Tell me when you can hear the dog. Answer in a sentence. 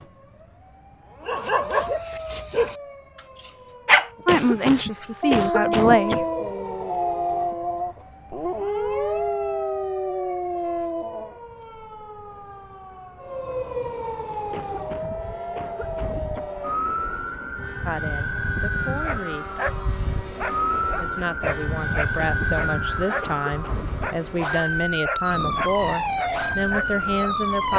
You can hear the dog from 1.2 to 11.3 s and from 18.8 to 27.4 s.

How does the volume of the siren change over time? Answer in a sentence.
The loudness of the siren goes up.